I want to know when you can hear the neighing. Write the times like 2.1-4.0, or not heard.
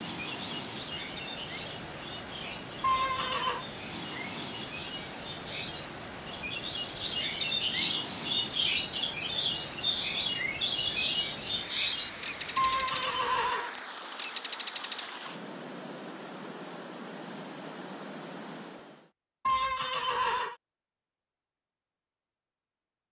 2.8-3.6, 12.6-13.8, 19.4-20.6.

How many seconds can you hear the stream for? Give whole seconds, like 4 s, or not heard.
19 s.